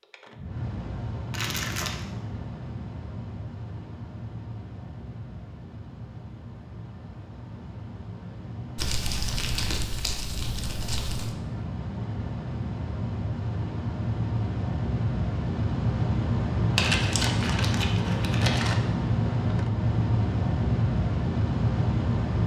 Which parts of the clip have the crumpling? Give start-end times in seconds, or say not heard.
1.3-2.0, 8.8-11.3, 16.8-18.8.